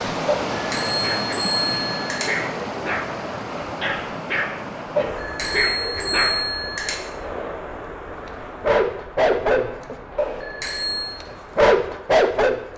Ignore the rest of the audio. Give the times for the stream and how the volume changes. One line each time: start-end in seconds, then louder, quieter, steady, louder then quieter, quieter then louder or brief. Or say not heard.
0.0-12.7 quieter.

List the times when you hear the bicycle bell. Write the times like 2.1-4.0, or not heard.
0.2-2.3, 5.0-7.0, 10.2-11.2.